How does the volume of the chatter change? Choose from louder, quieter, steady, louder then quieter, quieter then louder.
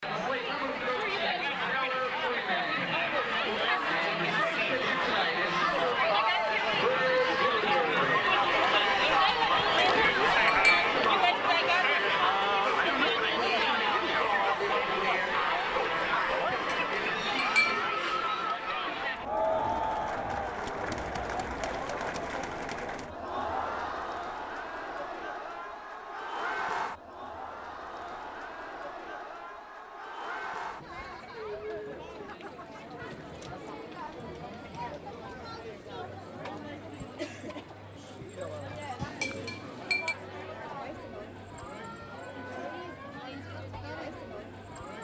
quieter.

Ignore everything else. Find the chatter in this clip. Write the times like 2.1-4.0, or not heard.
0.0-44.9.